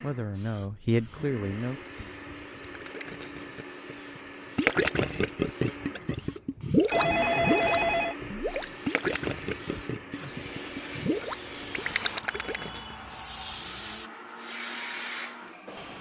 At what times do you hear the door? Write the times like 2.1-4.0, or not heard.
not heard.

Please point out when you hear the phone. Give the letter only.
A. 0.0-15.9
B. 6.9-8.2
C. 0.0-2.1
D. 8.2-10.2
B.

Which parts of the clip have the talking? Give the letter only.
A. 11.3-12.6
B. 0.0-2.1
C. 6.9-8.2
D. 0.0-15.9
B.